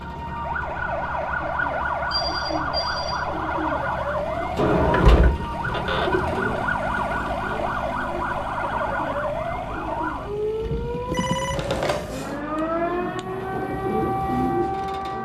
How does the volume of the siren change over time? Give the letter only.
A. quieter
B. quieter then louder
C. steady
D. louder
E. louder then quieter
C.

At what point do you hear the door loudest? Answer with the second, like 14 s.
5 s.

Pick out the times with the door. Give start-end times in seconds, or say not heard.
4.5-6.3.